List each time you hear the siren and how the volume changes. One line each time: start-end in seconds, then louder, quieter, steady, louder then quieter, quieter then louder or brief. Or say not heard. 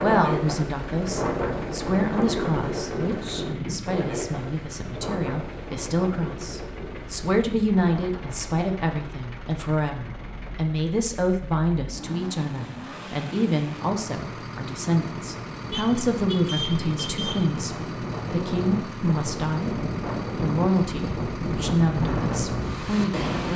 not heard.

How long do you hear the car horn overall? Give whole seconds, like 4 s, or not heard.
2 s.